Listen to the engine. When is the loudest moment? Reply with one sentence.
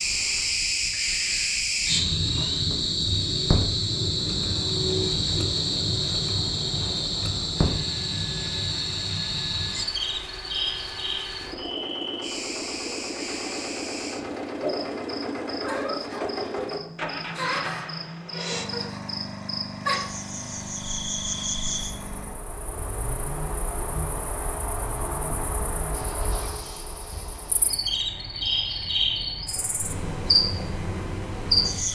The loudest moment of the engine is at 16 seconds.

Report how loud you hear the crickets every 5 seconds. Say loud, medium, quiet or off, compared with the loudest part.
loud, loud, medium, medium, medium, medium, loud.